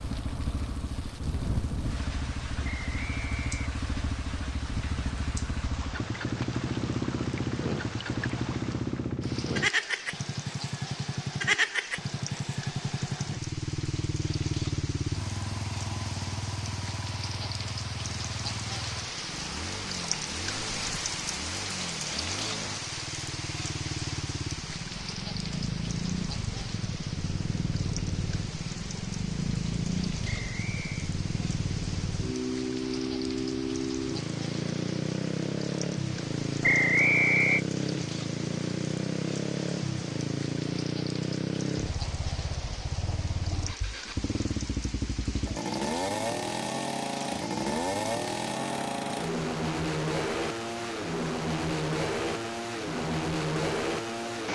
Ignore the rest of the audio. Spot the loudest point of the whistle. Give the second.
37 s.